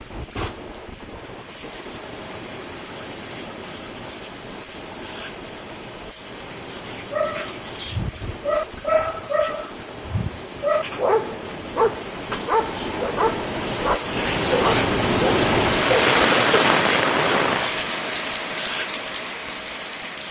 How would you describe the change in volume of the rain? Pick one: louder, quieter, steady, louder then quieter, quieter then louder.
louder.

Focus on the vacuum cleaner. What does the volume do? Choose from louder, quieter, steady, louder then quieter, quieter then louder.
louder.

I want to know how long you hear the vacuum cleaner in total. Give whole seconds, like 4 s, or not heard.
20 s.